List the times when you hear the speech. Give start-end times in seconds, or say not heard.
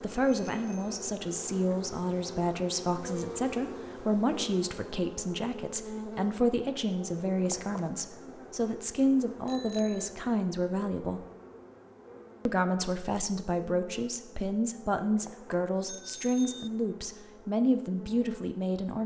0.0-11.2, 12.4-19.0.